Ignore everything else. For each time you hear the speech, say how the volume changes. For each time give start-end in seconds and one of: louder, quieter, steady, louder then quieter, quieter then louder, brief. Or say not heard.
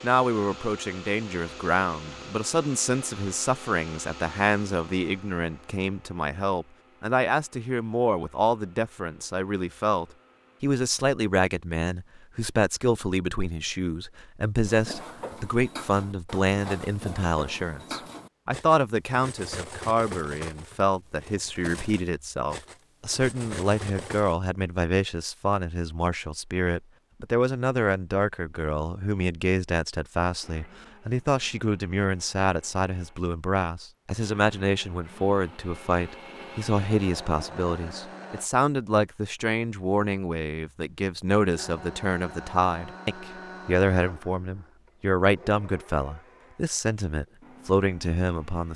0.0-48.7 steady.